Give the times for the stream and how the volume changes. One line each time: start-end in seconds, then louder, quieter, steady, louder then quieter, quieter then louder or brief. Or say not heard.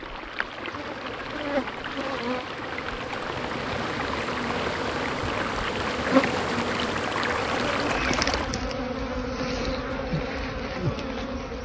0.0-8.6 louder.